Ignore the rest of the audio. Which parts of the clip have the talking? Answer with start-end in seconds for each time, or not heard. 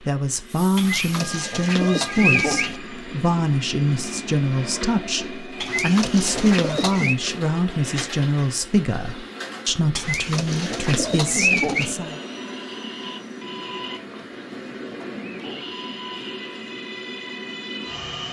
0.1-12.2.